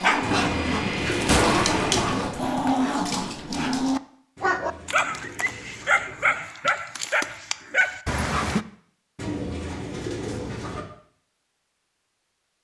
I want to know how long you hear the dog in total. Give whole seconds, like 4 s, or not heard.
9 s.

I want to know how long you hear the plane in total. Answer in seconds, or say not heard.
2 s.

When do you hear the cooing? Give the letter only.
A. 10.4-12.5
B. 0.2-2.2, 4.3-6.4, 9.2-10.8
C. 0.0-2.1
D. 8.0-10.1
B.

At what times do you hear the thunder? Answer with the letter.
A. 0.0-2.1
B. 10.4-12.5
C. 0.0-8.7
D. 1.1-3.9
D.